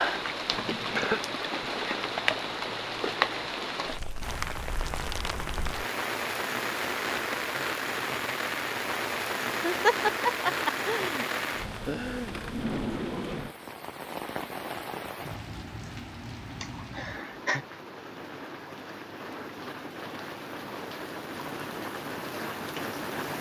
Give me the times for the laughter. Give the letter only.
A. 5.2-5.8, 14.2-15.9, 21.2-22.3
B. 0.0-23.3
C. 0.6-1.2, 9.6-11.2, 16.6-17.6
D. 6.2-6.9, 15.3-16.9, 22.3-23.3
C.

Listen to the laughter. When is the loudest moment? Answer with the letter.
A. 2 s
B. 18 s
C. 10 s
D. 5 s
C.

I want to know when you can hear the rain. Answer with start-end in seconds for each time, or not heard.
0.0-23.3.